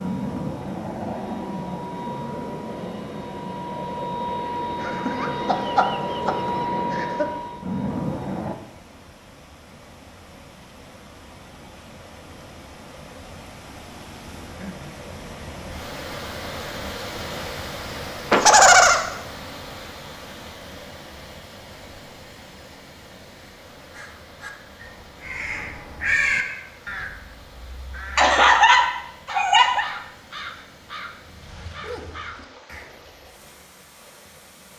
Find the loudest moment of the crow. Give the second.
26 s.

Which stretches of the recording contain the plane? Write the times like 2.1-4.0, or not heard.
0.0-8.6.